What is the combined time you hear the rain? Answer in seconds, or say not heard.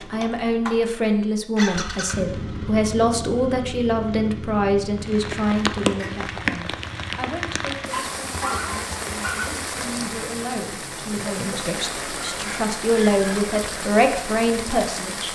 10 s.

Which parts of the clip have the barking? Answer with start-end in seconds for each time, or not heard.
7.9-9.5.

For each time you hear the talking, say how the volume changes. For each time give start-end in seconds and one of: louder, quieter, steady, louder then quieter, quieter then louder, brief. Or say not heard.
0.0-15.3 quieter then louder.